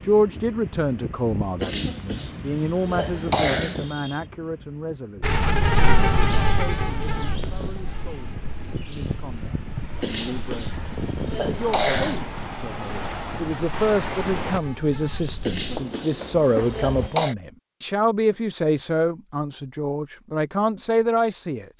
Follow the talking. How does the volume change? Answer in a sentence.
The volume of the talking goes down, then up.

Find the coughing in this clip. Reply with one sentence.
You can hear the coughing from 1.6 to 4.2 s, from 10.0 to 12.2 s and from 15.4 to 17.4 s.